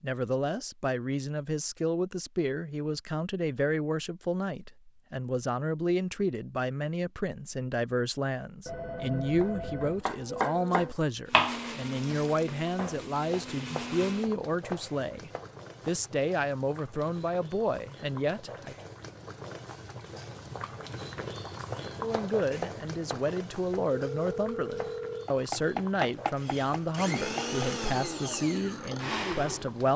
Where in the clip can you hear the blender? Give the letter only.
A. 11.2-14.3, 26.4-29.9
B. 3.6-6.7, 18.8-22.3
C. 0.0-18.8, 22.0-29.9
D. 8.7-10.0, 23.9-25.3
A.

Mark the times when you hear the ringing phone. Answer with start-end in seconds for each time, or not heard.
8.7-10.0, 23.9-25.3.